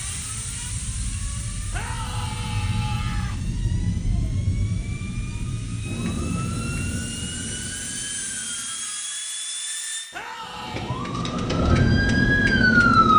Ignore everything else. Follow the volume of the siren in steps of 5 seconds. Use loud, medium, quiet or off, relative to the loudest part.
quiet, quiet, loud.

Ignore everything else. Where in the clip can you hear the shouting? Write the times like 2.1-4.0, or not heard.
1.7-3.4, 10.1-11.0.